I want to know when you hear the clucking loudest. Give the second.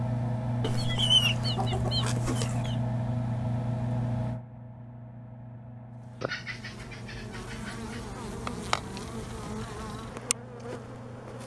1 s.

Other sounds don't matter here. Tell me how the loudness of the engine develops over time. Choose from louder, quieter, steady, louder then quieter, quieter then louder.
quieter.